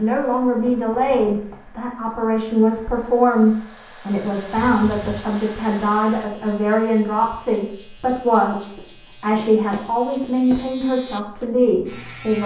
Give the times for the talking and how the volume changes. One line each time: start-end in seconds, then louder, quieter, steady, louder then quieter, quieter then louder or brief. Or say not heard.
0.0-12.4 steady.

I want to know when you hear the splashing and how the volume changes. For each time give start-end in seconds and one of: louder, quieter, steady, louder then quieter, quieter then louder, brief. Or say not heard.
not heard.